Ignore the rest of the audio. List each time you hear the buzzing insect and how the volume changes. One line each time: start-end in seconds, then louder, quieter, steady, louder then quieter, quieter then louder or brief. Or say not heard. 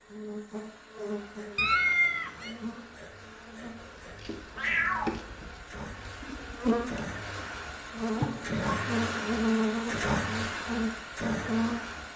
0.1-12.1 quieter then louder.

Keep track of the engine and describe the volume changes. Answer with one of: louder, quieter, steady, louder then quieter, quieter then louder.
louder.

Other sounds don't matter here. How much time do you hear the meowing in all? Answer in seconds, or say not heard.
3 s.